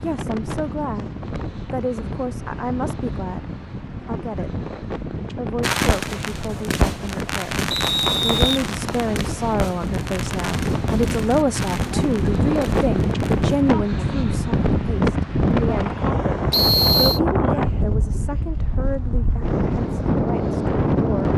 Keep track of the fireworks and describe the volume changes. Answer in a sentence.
The volume of the fireworks goes down.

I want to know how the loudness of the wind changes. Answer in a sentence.
The loudness of the wind goes up.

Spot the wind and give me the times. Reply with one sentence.
The wind can be heard from 0.0 to 21.3 s.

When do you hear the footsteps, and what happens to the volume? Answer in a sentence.
You can't hear the footsteps here.